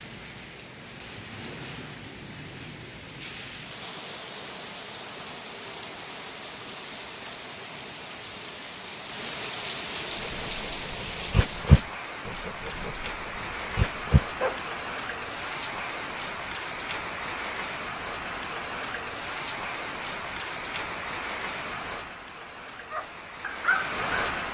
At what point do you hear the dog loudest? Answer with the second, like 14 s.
12 s.